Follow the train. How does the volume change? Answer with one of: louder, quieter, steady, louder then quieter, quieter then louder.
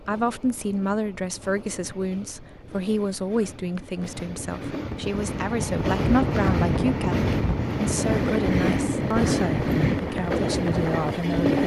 louder.